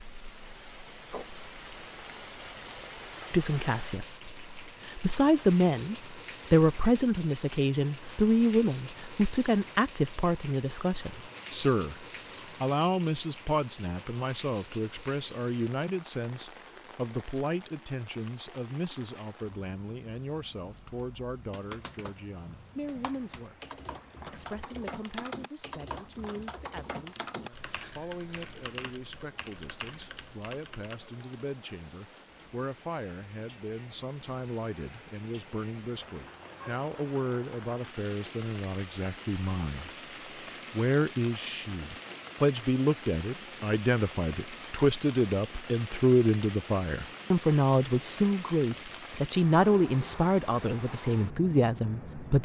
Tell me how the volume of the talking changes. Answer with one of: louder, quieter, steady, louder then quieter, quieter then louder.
quieter then louder.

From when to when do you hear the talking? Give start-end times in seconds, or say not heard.
3.3-23.6, 24.2-39.9, 40.7-52.4.